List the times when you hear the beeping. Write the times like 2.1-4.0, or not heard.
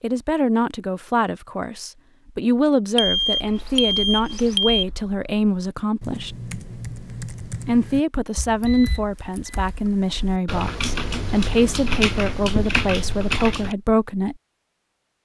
3.0-4.8, 8.7-9.7.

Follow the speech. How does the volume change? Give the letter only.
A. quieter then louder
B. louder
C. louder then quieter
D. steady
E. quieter
D.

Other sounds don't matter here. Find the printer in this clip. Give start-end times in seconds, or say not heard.
not heard.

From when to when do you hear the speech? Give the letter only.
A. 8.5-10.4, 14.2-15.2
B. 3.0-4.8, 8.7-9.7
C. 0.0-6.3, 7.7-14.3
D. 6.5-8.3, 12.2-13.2
C.